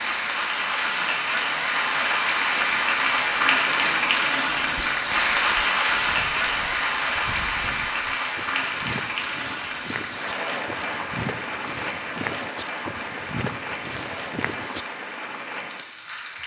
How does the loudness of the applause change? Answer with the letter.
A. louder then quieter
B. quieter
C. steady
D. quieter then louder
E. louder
B.